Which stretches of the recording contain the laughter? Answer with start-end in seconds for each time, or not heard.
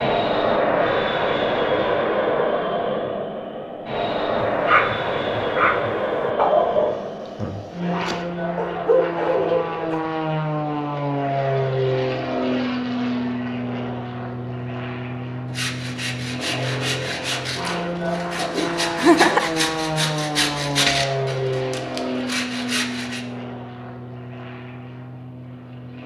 18.9-19.6.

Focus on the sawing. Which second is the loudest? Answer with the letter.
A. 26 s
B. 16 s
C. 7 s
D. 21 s
D.